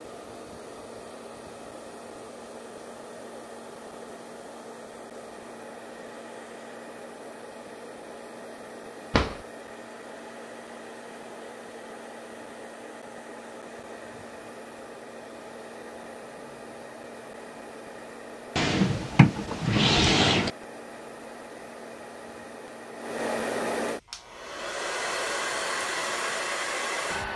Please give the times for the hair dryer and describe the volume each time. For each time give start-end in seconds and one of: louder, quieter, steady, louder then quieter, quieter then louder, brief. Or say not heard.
0.0-27.3 louder.